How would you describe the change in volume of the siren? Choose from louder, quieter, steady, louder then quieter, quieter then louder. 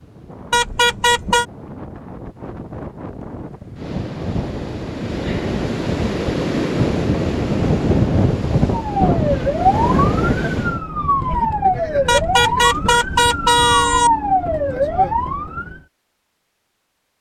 steady.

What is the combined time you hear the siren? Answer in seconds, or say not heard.
7 s.